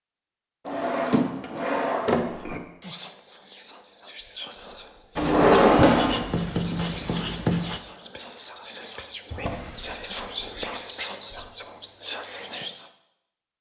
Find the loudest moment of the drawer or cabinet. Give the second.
6 s.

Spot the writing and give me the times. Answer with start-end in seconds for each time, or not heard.
5.8-7.8.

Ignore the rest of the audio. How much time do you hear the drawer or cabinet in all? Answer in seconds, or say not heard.
4 s.